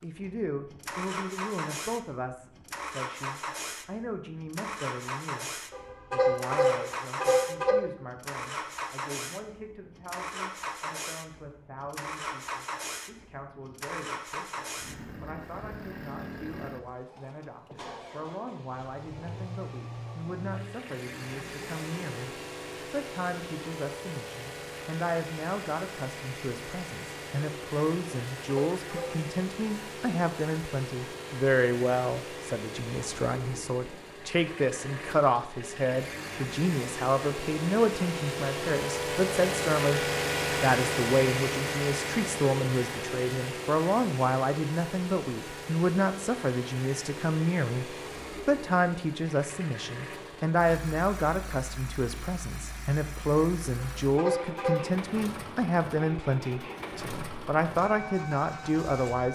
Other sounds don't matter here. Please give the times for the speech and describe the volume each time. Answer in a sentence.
The speech can be heard from 0.0 to 59.2 s, getting louder.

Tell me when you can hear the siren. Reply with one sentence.
You can't hear the siren here.